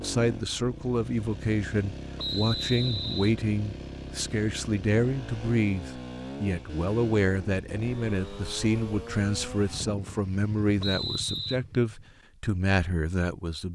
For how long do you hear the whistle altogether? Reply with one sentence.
The whistle can be heard for 2 seconds in total.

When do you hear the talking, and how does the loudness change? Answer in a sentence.
You can hear the talking from 0.0 to 13.7 s, at a steady volume.